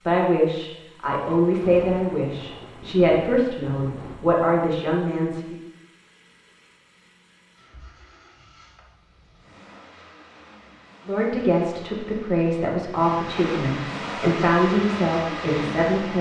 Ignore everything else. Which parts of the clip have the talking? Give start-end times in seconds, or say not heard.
0.0-5.6, 11.1-16.1.